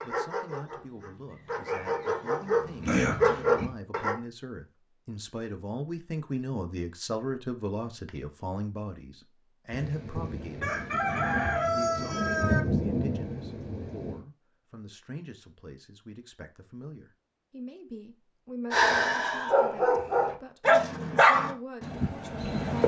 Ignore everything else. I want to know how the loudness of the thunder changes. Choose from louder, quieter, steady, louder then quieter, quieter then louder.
louder then quieter.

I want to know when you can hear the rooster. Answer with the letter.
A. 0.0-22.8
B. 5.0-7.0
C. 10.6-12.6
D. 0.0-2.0
C.